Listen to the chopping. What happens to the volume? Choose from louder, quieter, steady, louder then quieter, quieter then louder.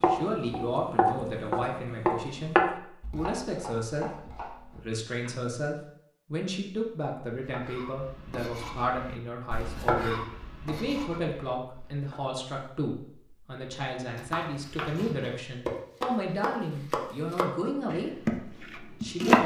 quieter then louder.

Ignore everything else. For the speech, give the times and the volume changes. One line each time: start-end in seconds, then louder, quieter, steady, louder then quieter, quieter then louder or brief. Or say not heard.
0.0-19.4 steady.